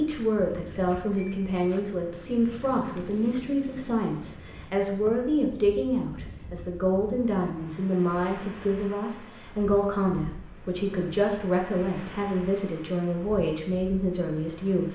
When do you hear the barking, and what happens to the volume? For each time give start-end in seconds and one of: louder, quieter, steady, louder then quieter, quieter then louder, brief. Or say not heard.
not heard.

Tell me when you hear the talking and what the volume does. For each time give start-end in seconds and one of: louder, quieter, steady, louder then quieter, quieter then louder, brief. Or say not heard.
0.0-14.9 steady.